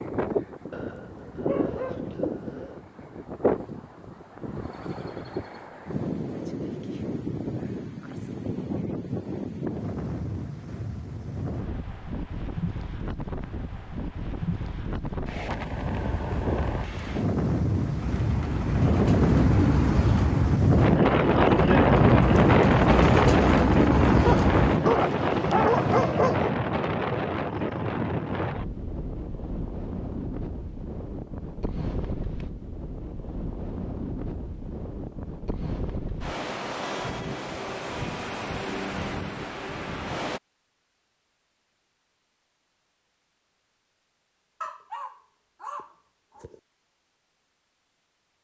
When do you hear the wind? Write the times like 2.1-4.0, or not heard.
0.0-40.4.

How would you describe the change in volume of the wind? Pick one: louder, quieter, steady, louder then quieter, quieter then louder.
louder then quieter.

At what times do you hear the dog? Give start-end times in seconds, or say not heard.
0.7-2.8, 24.2-26.6, 44.6-46.6.